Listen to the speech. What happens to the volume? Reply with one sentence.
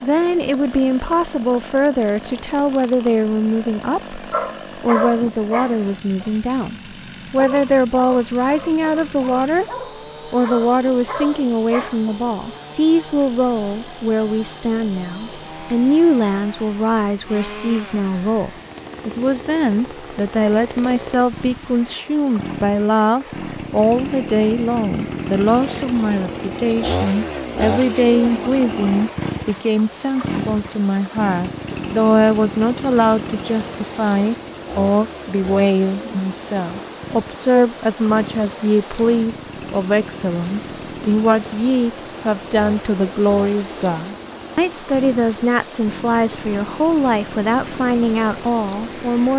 The loudness of the speech stays about the same.